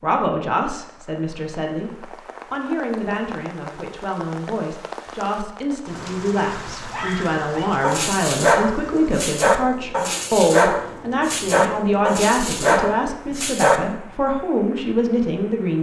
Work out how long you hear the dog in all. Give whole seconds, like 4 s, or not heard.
7 s.